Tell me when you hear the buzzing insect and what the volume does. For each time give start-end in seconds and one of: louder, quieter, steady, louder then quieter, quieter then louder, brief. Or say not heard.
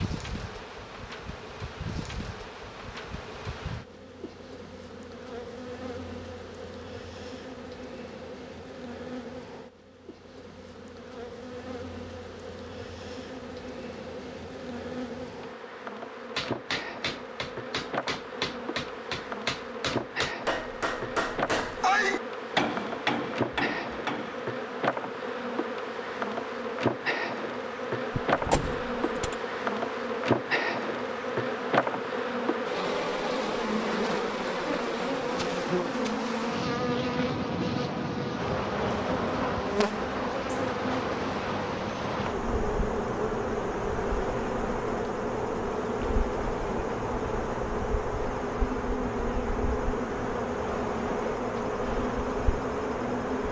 0.0-53.4 louder.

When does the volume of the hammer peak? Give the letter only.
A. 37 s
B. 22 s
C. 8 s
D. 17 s
B.